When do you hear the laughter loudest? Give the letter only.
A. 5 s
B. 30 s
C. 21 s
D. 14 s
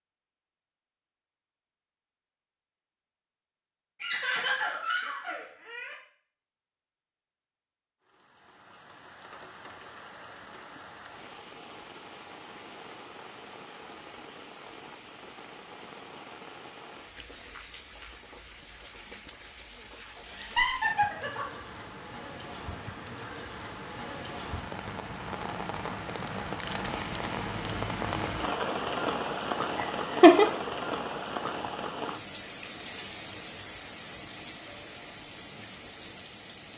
B.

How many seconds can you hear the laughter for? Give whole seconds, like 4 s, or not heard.
4 s.